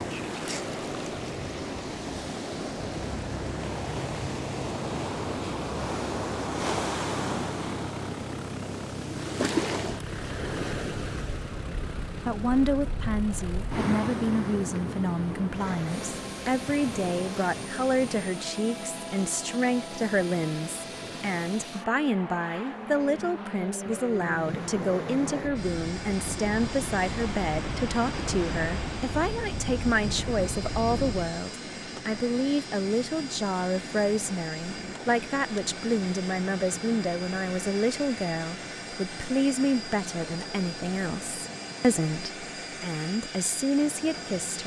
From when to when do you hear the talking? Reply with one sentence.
The talking can be heard from 12.2 to 44.6 s.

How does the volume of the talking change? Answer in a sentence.
The volume of the talking stays about the same.